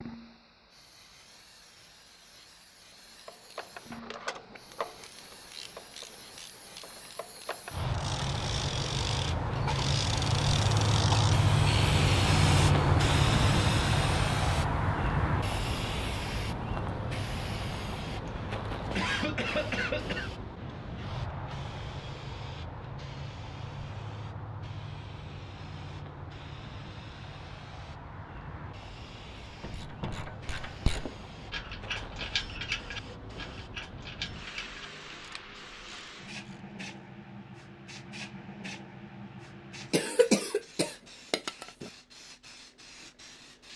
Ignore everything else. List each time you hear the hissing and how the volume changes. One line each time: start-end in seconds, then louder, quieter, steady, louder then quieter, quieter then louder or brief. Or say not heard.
0.0-43.7 louder then quieter.